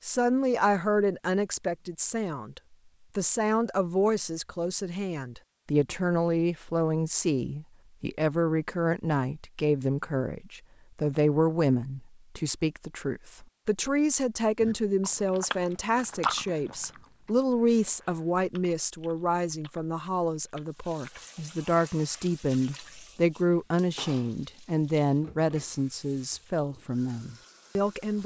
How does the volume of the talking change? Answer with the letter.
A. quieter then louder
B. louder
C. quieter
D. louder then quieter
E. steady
E.